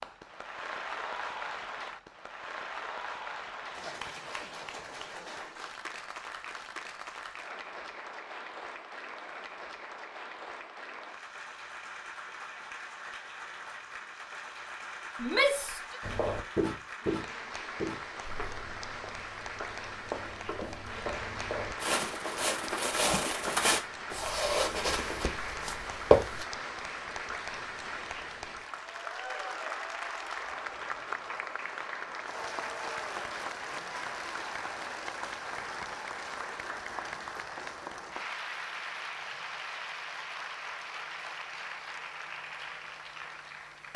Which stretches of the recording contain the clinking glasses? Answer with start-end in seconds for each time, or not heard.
not heard.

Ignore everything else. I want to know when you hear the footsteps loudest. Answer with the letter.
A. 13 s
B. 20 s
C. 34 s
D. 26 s
D.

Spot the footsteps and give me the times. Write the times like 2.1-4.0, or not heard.
16.0-26.4.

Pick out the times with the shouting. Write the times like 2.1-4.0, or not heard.
15.2-16.0.